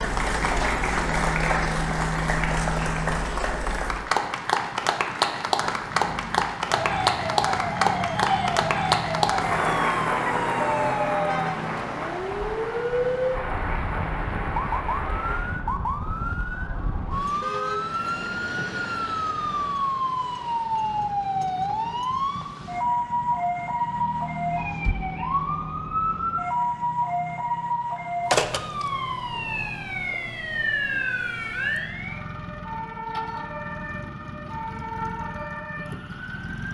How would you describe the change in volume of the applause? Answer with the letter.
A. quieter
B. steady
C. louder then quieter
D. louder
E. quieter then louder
A.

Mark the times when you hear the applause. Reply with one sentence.
The applause can be heard from 0.0 to 15.6 s.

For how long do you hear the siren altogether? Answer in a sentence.
The siren can be heard for 30 seconds in total.